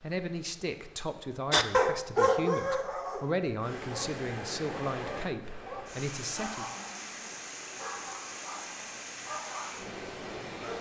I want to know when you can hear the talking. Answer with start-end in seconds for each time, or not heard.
0.0-6.7.